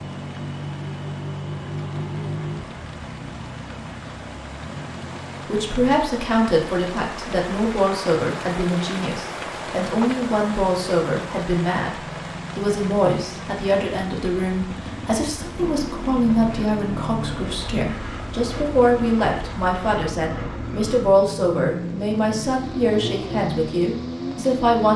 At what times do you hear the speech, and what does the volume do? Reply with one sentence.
You can hear the speech from 5.5 to 24.9 s, at a steady volume.